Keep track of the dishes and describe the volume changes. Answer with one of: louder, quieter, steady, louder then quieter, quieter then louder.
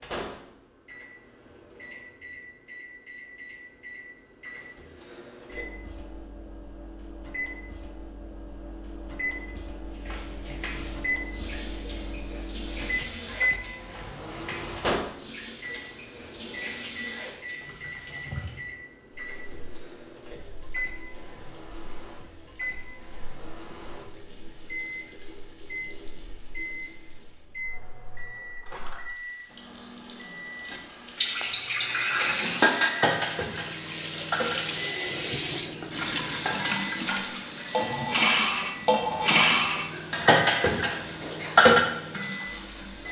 quieter then louder.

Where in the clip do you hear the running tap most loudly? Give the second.
35 s.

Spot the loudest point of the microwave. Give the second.
13 s.